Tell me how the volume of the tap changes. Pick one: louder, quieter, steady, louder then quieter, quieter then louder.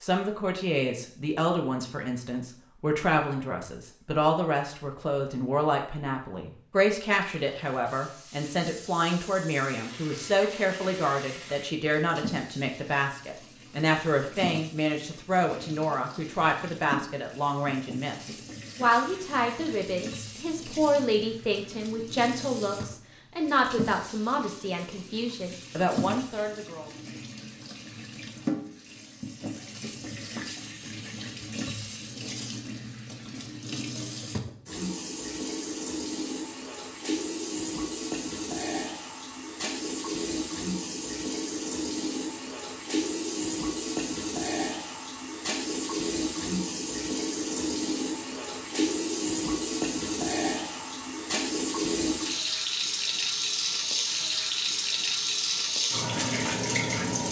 louder.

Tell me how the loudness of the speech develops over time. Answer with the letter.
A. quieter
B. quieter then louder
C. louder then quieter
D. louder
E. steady
E.